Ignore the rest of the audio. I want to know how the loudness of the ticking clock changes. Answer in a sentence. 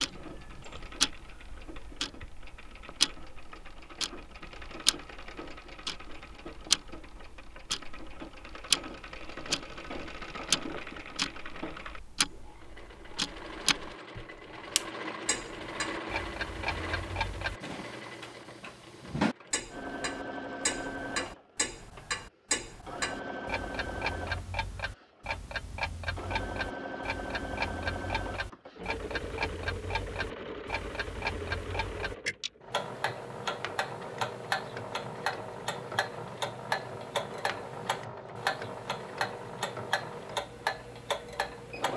The loudness of the ticking clock stays about the same.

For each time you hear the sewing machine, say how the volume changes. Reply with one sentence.
The sewing machine can be heard from 0.0 to 41.9 s, getting louder.